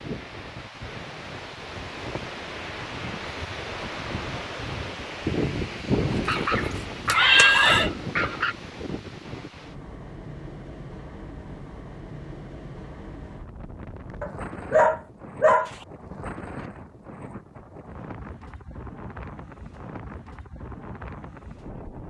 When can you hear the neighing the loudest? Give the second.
7 s.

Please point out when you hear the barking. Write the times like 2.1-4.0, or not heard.
6.0-8.6, 14.2-15.8.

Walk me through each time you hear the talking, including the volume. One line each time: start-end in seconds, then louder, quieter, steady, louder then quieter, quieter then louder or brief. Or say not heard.
not heard.